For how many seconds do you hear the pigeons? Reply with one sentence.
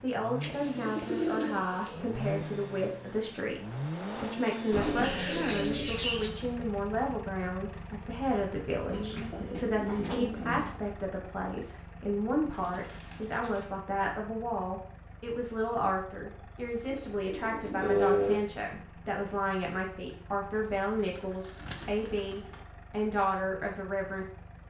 The pigeons can be heard for 10 seconds in total.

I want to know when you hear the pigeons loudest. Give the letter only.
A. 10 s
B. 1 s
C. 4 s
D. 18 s
D.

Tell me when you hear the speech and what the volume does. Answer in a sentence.
You can hear the speech from 0.0 to 24.2 s, at a steady volume.